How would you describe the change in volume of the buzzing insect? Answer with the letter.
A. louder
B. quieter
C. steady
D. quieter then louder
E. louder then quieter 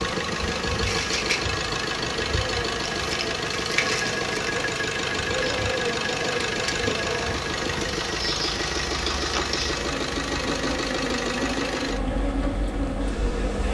C.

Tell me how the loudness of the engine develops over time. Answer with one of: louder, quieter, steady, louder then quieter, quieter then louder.
steady.